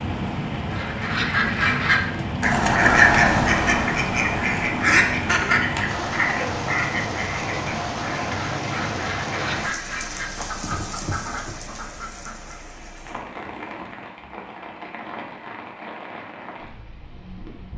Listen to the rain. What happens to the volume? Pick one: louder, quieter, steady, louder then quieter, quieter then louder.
quieter.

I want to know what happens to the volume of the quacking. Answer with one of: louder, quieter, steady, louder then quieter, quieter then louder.
quieter.